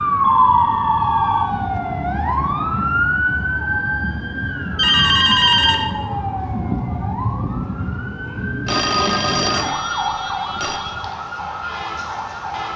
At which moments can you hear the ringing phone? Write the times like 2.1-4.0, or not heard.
0.2-1.4, 4.8-5.8, 8.7-10.8.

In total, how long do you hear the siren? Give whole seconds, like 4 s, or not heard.
13 s.